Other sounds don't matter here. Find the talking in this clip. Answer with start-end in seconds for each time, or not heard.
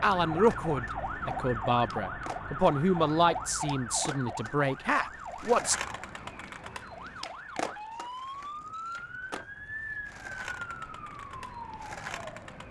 0.0-5.8.